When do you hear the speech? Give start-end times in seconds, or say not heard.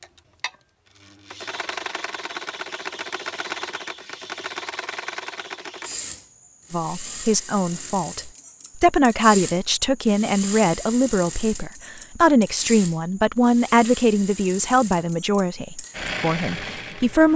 6.7-17.3.